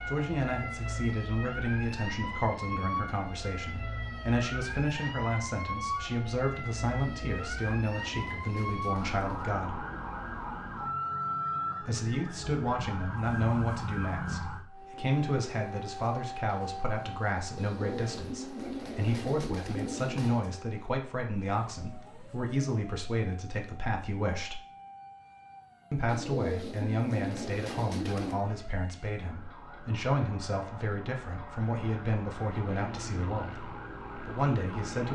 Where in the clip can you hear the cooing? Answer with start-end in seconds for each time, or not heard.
7.2-9.6, 17.6-20.5, 26.1-28.4.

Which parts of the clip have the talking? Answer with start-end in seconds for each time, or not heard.
0.1-9.8, 11.8-24.6, 25.9-35.0.